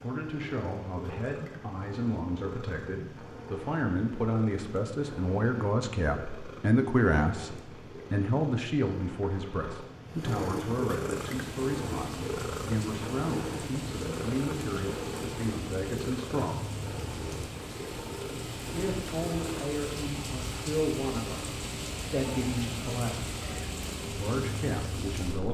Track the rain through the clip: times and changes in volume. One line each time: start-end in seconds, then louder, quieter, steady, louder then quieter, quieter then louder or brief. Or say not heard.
11.2-25.4 louder.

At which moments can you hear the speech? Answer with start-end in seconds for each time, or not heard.
0.0-16.7, 18.7-23.2, 24.1-25.4.